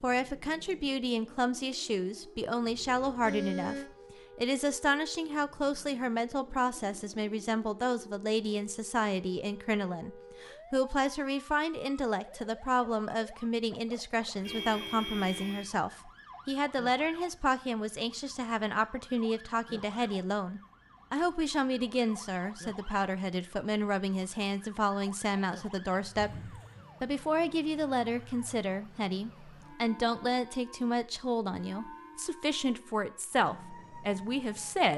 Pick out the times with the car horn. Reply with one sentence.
The car horn can be heard from 2.6 to 4.0 s, from 14.4 to 15.7 s and from 26.1 to 26.8 s.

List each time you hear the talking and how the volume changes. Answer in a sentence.
The talking can be heard from 0.0 to 34.9 s, at a steady volume.